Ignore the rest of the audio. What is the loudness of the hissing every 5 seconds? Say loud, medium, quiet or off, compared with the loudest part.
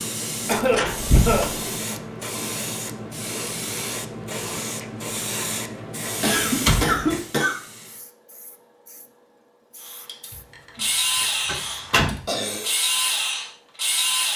loud, loud, quiet.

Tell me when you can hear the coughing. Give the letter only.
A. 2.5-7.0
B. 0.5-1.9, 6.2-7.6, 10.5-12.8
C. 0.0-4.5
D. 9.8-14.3
B.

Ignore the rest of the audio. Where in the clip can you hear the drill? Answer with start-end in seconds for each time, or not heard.
9.8-14.3.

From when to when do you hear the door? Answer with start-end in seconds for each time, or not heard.
0.5-1.7, 6.5-7.0, 11.4-12.2.